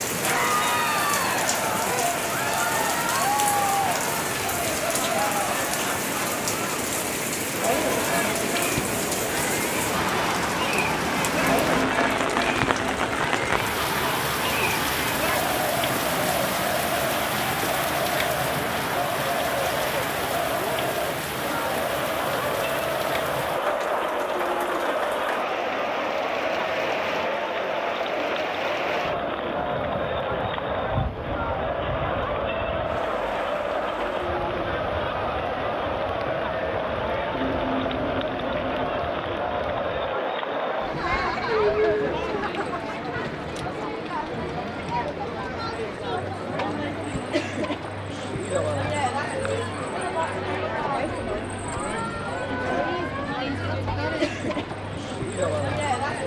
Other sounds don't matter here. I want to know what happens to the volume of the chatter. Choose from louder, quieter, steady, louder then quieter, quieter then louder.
steady.